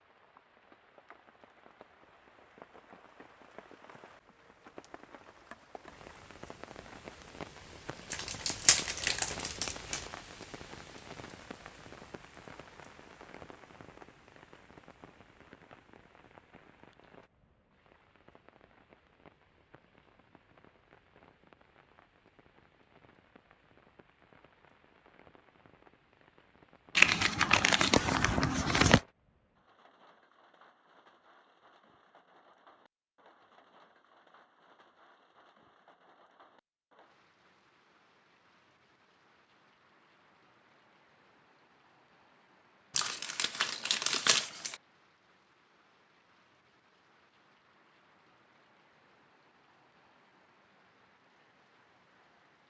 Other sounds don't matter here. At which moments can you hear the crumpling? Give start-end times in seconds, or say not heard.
8.1-10.1, 26.9-29.0, 43.0-44.8.